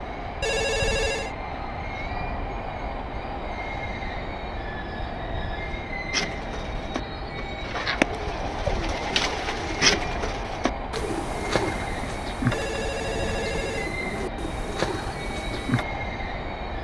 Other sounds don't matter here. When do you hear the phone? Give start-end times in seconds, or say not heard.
0.4-1.4, 12.5-13.9.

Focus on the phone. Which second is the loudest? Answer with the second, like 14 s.
1 s.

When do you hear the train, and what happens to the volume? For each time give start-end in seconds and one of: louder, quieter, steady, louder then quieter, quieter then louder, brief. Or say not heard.
0.0-16.8 steady.